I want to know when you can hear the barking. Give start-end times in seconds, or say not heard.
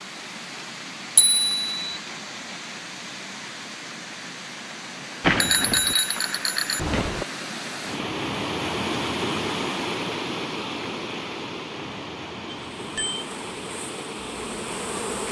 not heard.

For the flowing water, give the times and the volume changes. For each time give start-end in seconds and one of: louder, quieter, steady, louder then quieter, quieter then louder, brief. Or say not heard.
0.0-15.2 louder then quieter.